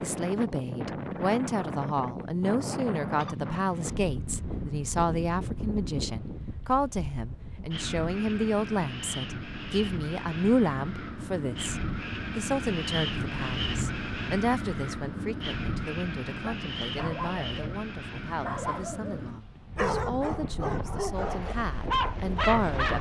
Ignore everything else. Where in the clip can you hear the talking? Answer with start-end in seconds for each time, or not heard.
0.0-11.8, 12.3-22.9.